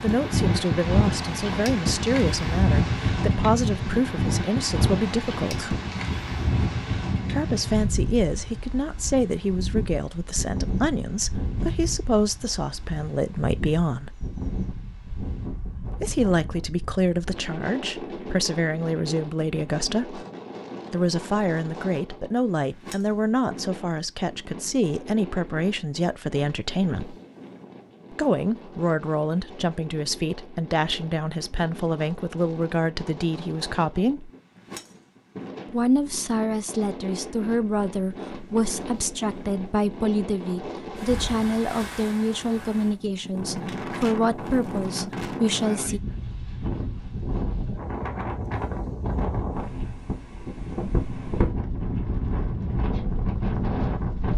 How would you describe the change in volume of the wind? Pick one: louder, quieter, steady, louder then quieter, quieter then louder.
quieter then louder.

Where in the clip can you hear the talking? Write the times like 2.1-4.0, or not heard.
0.0-5.8, 7.3-14.2, 15.9-20.2, 20.9-27.1, 28.1-34.3, 35.7-46.0.